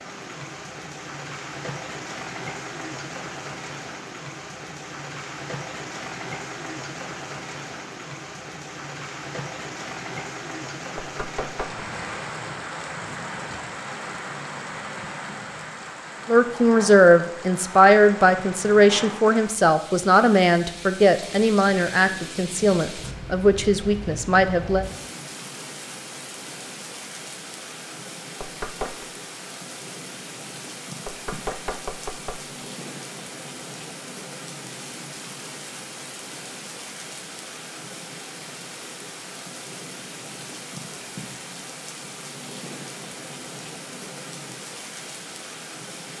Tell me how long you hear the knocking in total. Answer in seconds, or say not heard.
3 s.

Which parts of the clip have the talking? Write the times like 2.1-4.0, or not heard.
16.2-24.9.